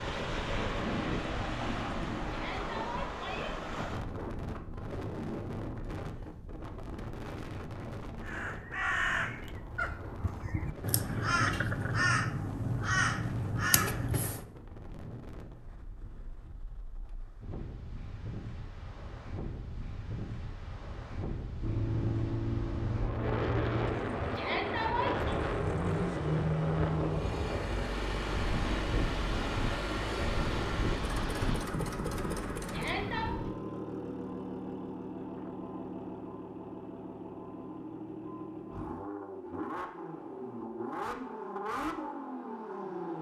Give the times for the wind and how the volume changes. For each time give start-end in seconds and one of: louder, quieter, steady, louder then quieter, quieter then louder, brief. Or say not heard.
0.0-33.5 quieter then louder.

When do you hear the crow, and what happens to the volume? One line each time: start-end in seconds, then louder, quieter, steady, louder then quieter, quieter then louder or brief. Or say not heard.
8.2-14.4 quieter then louder.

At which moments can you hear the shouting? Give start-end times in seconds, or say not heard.
2.3-3.5, 24.4-25.4, 32.7-33.4.